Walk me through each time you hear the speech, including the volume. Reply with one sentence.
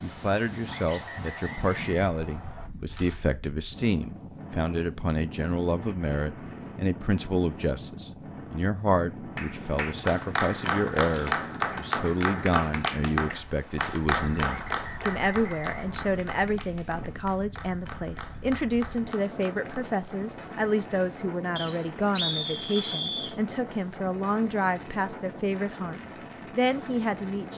The speech can be heard from 0.0 to 27.5 s, at a steady volume.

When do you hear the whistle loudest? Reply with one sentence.
The loudest moment of the whistle is at 22 seconds.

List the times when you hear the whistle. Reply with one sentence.
The whistle can be heard from 0.7 to 2.7 s, from 14.4 to 16.1 s and from 21.6 to 23.4 s.